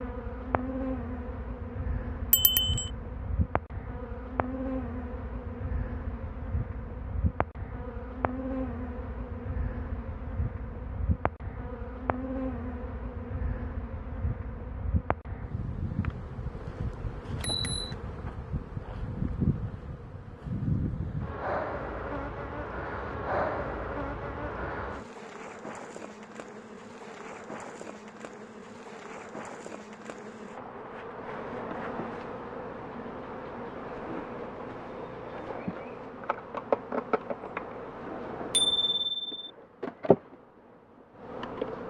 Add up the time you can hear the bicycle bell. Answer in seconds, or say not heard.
2 s.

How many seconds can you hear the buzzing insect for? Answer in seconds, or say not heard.
42 s.